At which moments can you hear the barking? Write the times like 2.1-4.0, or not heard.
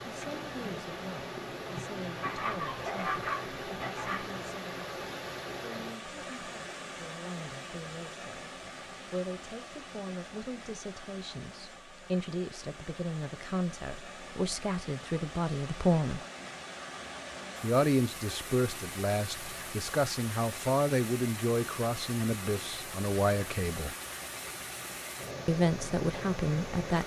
2.2-4.2.